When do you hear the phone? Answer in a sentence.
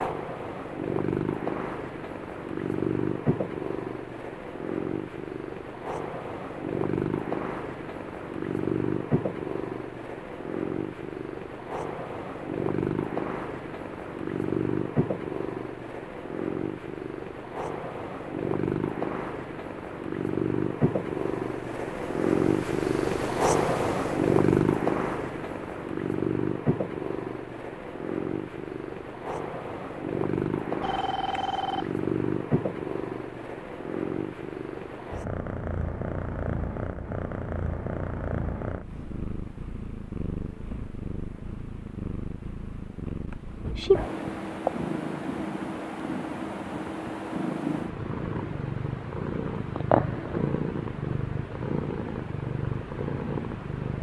You can hear the phone from 30.8 to 31.9 s.